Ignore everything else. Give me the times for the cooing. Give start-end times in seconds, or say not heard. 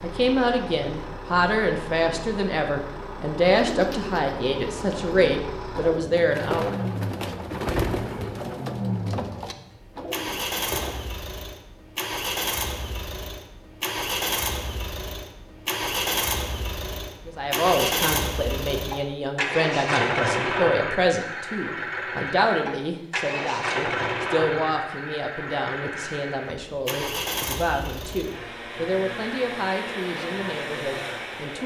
3.5-11.1.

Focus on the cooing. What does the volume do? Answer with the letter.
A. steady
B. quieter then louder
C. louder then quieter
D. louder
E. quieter
C.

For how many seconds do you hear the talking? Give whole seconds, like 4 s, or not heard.
21 s.